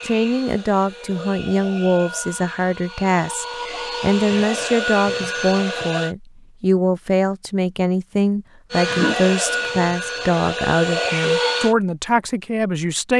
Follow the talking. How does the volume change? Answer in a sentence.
The loudness of the talking stays about the same.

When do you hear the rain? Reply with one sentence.
You can't hear the rain here.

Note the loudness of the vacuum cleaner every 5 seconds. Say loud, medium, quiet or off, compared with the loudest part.
medium, loud, loud.